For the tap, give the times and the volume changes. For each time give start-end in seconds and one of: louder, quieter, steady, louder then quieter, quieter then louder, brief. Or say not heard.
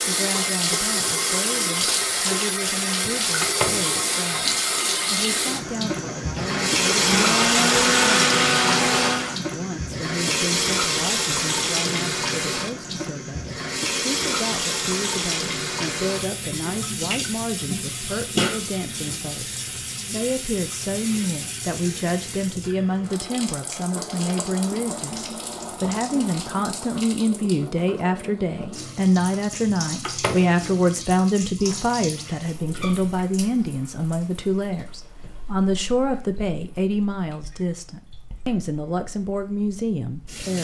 0.0-40.6 quieter.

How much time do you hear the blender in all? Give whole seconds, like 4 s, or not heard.
3 s.